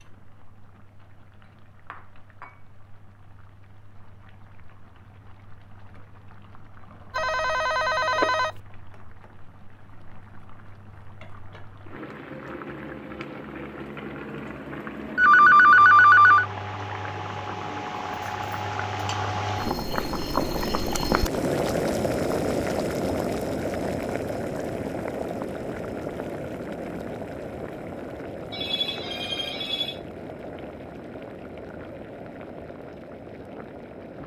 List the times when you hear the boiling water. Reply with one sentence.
You can hear the boiling water from 0.0 to 34.2 s.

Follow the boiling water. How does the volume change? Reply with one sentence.
The volume of the boiling water goes up, then down.